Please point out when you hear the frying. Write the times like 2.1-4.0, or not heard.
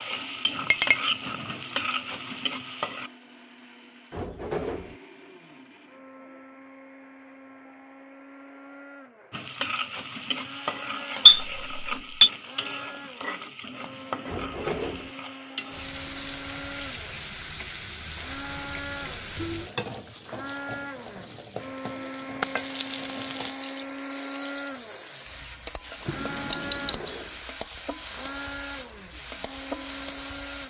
0.0-3.1, 9.3-30.6.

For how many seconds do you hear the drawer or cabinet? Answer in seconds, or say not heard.
3 s.